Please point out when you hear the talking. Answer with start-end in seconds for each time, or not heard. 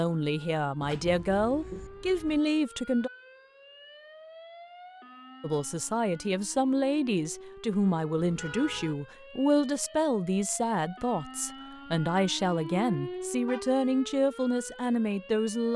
0.0-3.1, 5.4-15.7.